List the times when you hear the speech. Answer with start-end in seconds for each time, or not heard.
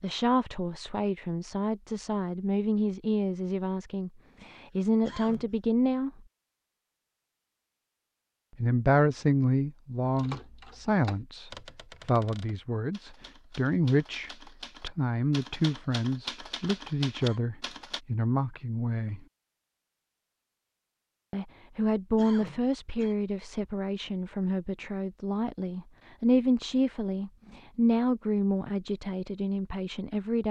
0.0-6.1, 8.6-19.2, 21.3-30.4.